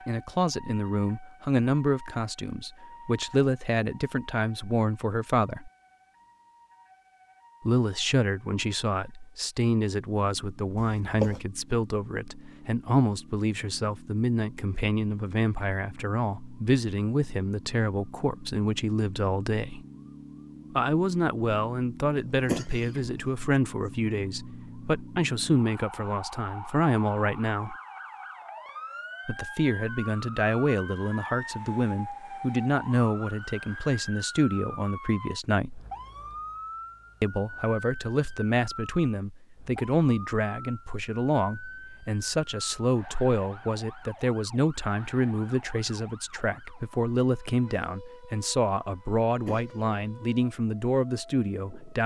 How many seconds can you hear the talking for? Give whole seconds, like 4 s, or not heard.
46 s.